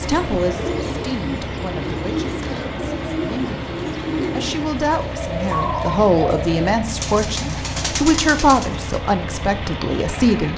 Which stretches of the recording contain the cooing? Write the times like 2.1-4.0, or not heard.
0.0-8.9.